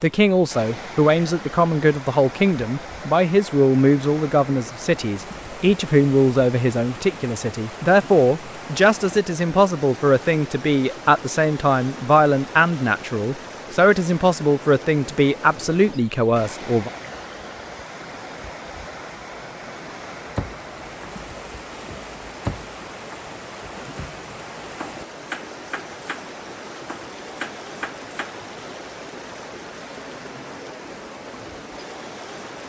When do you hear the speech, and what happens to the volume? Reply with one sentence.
You can hear the speech from 0.0 to 16.9 s, at a steady volume.